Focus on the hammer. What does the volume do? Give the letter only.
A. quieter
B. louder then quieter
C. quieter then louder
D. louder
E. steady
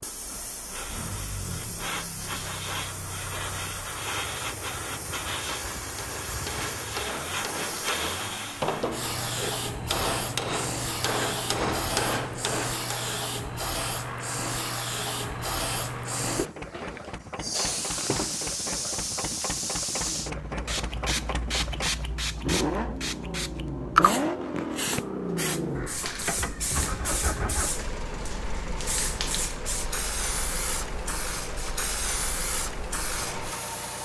D.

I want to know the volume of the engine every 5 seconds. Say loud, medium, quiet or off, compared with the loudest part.
medium, medium, medium, medium, loud, loud, medium.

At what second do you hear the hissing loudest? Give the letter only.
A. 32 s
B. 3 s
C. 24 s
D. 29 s
C.